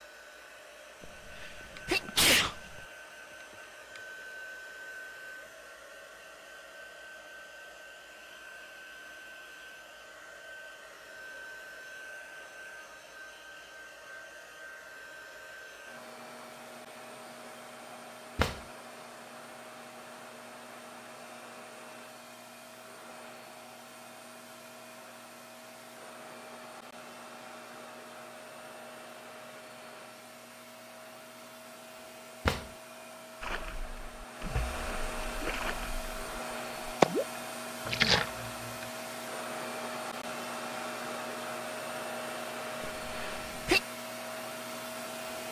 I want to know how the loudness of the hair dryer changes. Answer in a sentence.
The volume of the hair dryer goes up.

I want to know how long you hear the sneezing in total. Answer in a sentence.
You can hear the sneezing for 3 seconds altogether.